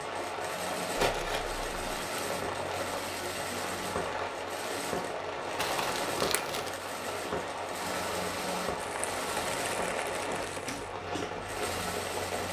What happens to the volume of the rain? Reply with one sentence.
The volume of the rain stays about the same.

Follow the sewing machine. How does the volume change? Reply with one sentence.
The loudness of the sewing machine stays about the same.